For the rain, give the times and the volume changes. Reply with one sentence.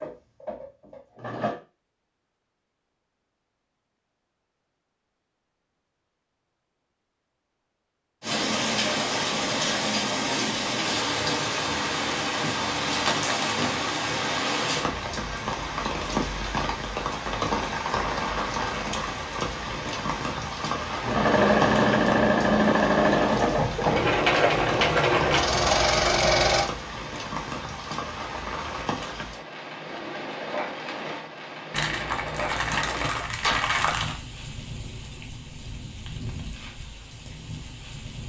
You can hear the rain from 8.2 to 38.2 s, getting quieter.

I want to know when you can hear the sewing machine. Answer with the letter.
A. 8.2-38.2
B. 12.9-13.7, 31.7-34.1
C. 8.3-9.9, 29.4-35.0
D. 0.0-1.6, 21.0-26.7
D.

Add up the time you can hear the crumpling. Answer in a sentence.
You can hear the crumpling for 3 seconds altogether.